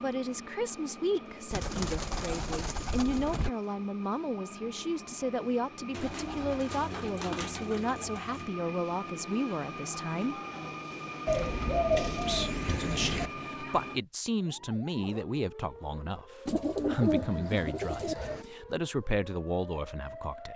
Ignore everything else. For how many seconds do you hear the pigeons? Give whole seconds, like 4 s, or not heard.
9 s.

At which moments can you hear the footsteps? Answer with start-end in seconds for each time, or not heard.
not heard.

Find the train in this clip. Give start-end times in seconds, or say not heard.
0.0-14.0.